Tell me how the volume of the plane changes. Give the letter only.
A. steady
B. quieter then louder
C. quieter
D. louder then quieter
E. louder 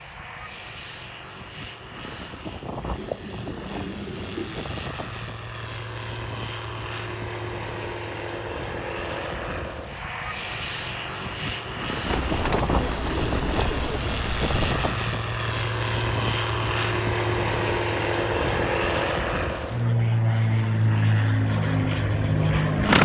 E.